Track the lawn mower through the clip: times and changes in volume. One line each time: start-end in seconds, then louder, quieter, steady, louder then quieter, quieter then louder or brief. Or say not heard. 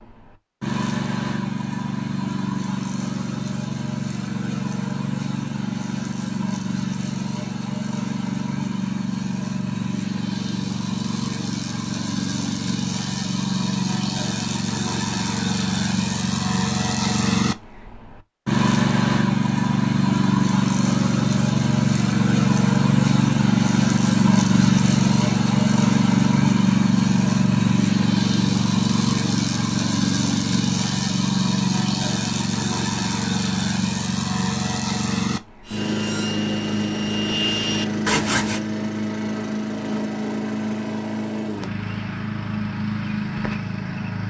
0.0-44.2 louder then quieter.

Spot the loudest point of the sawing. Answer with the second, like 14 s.
38 s.